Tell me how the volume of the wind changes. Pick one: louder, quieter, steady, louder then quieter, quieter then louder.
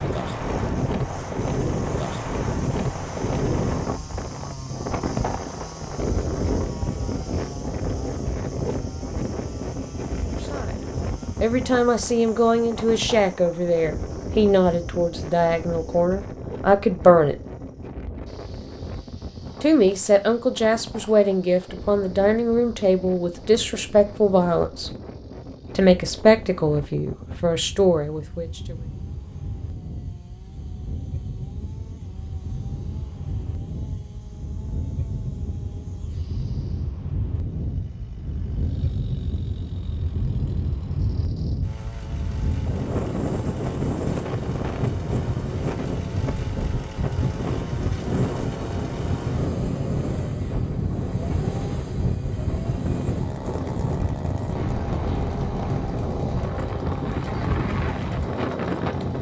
quieter then louder.